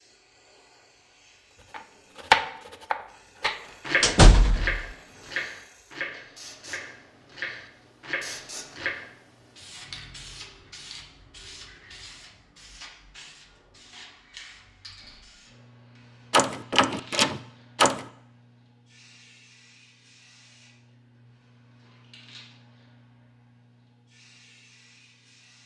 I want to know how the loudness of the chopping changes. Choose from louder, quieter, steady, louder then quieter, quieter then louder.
quieter then louder.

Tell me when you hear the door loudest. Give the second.
4 s.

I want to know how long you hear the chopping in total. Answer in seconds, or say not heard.
7 s.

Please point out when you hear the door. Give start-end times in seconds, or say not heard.
4.0-4.8, 16.3-18.0.